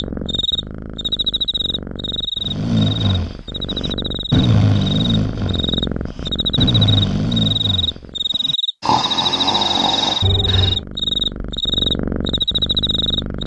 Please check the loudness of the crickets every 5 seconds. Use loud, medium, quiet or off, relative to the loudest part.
medium, loud, loud.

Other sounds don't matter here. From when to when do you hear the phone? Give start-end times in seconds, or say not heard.
10.2-10.8.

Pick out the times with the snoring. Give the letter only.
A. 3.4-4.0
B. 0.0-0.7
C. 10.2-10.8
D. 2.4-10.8
D.